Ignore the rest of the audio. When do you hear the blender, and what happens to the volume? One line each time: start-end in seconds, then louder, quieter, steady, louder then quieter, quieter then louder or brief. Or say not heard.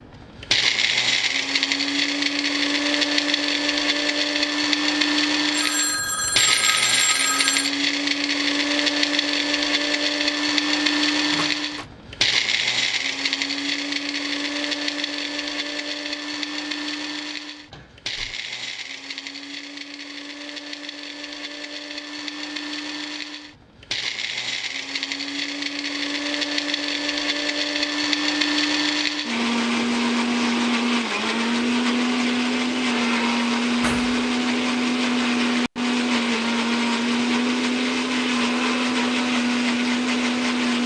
0.0-40.8 quieter then louder.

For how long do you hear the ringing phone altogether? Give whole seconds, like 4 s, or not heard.
2 s.